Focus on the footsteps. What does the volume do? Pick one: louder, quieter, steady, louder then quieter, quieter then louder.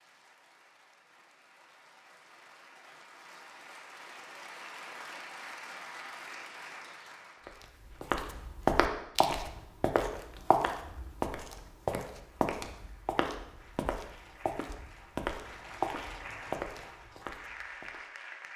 quieter.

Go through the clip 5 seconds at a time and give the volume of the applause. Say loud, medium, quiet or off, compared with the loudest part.
medium, loud, medium, loud.